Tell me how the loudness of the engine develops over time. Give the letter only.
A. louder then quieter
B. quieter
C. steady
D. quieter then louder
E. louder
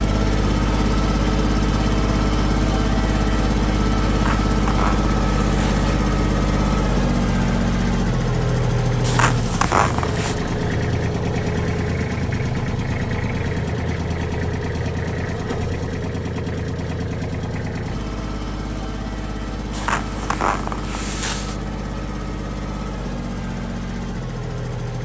B.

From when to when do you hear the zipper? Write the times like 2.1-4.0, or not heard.
4.1-5.9, 9.0-10.3, 19.7-21.6.